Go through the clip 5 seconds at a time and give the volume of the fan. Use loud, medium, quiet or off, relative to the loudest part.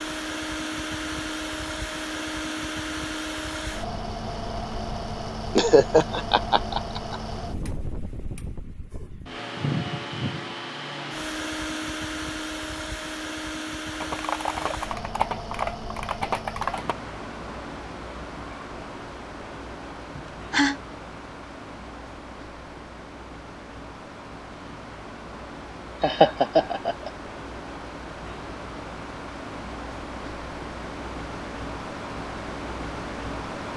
loud, loud, loud, medium, medium, medium, loud.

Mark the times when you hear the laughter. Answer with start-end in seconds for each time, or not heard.
5.5-7.2, 20.1-20.8, 26.0-27.1.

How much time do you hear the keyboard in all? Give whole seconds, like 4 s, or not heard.
3 s.